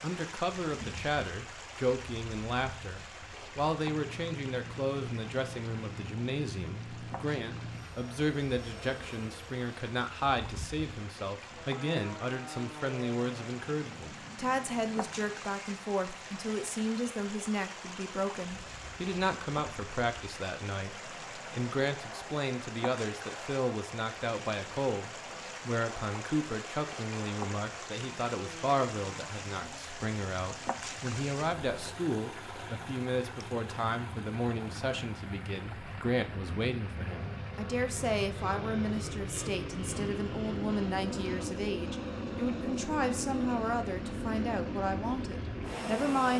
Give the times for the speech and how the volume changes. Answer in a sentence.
You can hear the speech from 0.0 to 46.3 s, at a steady volume.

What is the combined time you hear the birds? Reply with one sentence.
The birds can't be heard in this clip.